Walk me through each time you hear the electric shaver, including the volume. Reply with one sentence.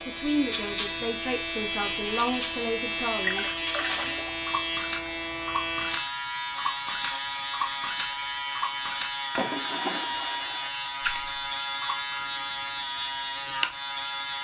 The electric shaver can be heard from 0.0 to 14.3 s, at a steady volume.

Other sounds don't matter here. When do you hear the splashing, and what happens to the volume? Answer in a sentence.
The splashing can be heard from 3.2 to 12.3 s, at a steady volume.